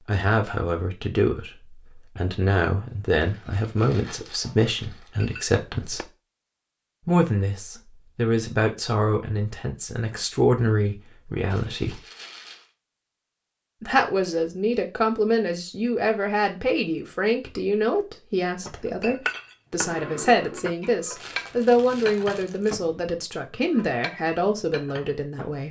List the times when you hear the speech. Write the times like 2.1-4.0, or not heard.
0.1-6.1, 7.0-12.0, 13.8-25.6.